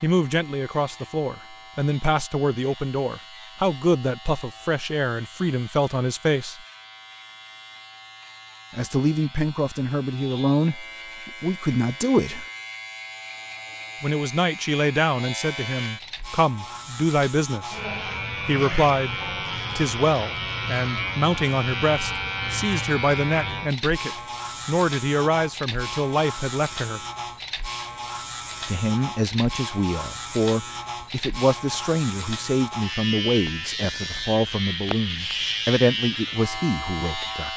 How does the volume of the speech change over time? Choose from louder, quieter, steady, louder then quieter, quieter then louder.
steady.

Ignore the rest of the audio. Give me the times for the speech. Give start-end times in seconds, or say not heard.
0.0-6.6, 8.7-12.4, 14.0-17.8, 18.4-27.0, 28.6-37.5.